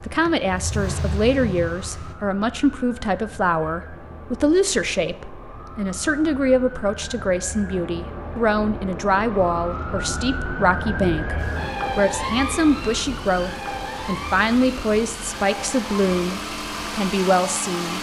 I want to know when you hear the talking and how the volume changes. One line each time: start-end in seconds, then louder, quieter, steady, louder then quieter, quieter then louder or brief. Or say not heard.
0.0-17.9 steady.